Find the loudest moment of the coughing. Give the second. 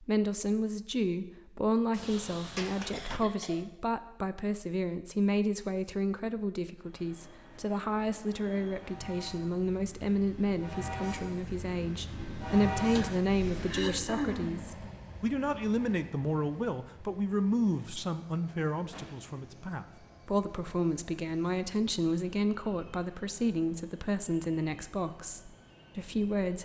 14 s.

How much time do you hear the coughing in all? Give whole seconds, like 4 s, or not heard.
2 s.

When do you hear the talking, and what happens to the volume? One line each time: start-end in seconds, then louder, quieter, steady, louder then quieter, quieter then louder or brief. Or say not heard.
0.0-26.6 steady.